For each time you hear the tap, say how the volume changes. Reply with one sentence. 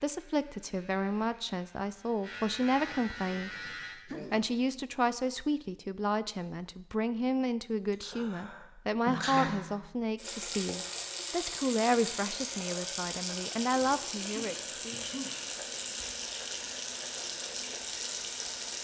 The tap can be heard from 10.2 to 18.7 s, at a steady volume.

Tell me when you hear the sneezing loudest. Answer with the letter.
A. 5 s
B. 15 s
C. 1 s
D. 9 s
D.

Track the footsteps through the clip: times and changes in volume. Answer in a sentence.
You can't hear the footsteps here.